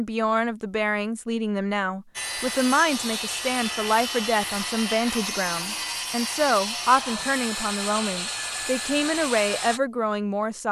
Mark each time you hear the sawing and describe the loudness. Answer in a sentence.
The sawing can be heard from 2.1 to 9.8 s, at a steady volume.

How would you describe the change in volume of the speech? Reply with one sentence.
The loudness of the speech stays about the same.